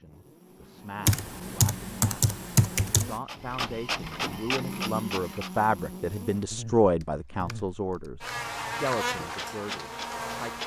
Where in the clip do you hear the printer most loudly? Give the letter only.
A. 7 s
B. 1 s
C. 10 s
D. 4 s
D.